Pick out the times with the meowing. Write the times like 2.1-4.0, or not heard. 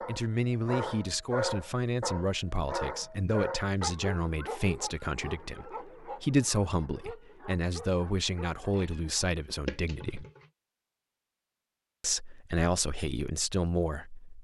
8.6-10.5.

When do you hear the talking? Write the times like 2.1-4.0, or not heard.
0.1-10.2, 12.0-14.4.